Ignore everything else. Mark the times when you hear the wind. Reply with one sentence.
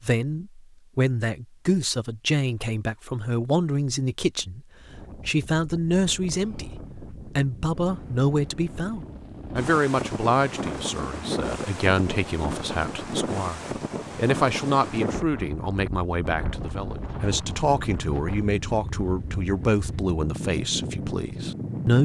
You can hear the wind from 4.7 to 22.0 s.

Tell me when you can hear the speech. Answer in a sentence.
The speech can be heard from 0.0 to 4.6 s and from 5.2 to 22.0 s.